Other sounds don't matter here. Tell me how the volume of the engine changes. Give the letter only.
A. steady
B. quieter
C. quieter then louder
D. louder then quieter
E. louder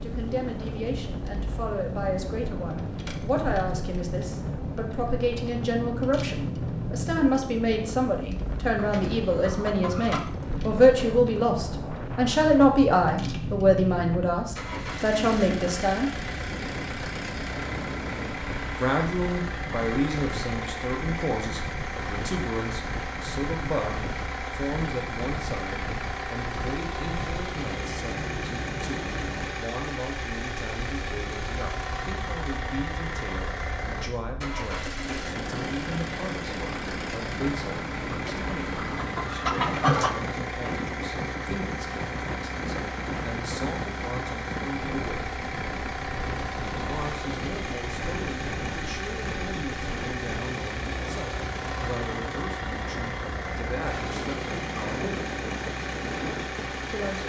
A.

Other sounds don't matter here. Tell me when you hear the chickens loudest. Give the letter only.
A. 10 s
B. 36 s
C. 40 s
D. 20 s
C.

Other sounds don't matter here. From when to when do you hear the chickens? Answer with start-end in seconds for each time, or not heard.
8.8-10.3, 38.1-40.1.